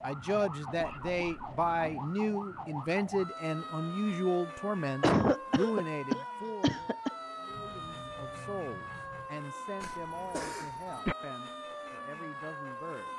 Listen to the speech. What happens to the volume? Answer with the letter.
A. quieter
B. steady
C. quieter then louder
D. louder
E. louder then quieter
A.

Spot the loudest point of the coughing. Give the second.
5 s.